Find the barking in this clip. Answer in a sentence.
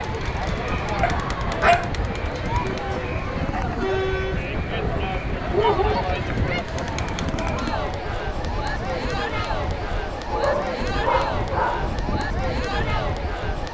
The barking can be heard from 1.0 to 1.9 s, from 4.7 to 6.6 s and from 10.3 to 11.9 s.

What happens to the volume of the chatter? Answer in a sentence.
The volume of the chatter stays about the same.